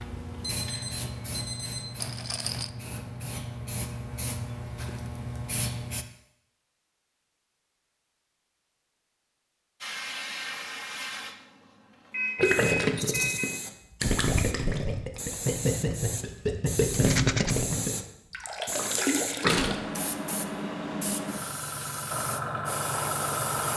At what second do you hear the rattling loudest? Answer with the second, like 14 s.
17 s.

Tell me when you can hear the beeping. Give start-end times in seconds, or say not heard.
0.4-2.1, 12.1-13.5.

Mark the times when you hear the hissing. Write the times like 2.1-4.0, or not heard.
0.0-6.0, 9.8-23.7.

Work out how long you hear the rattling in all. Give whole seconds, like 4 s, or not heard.
2 s.